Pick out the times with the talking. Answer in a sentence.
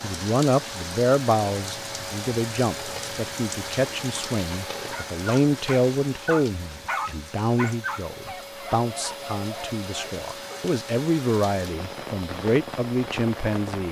The talking can be heard from 0.0 to 13.8 s.